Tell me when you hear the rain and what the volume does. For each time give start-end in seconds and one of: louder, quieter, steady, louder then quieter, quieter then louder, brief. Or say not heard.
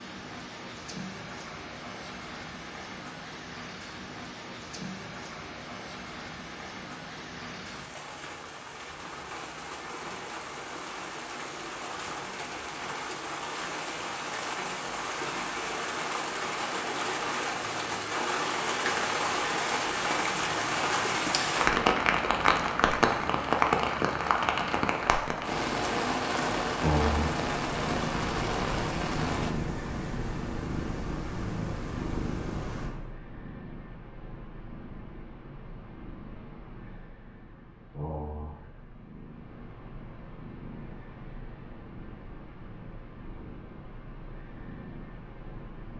0.0-29.6 louder.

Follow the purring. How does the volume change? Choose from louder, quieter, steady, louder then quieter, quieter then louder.
quieter.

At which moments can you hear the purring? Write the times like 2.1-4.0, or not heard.
26.8-45.9.